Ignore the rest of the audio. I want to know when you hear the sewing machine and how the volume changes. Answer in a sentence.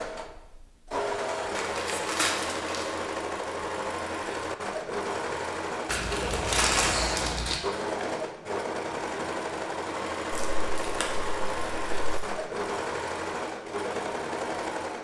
The sewing machine can be heard from 0.0 to 15.0 s, at a steady volume.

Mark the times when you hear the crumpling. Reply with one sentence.
You can hear the crumpling from 1.5 to 3.0 s, from 5.8 to 7.6 s and from 10.3 to 12.2 s.